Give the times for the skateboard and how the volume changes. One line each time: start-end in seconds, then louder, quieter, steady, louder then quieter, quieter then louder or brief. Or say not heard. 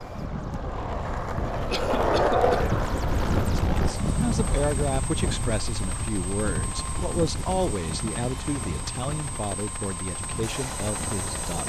0.0-4.7 louder then quieter.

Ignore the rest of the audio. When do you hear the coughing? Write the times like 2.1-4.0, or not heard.
1.7-2.6.